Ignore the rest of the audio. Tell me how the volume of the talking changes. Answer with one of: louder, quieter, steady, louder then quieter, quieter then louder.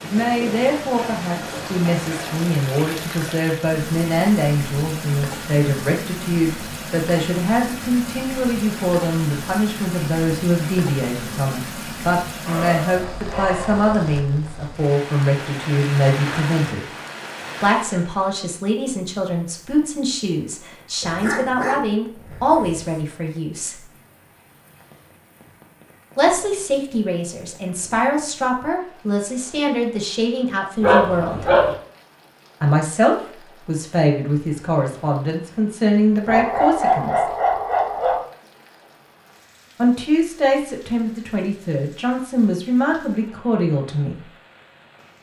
steady.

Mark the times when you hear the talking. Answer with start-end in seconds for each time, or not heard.
0.0-16.9, 17.6-23.8, 26.1-31.4, 32.6-37.2, 39.8-44.2.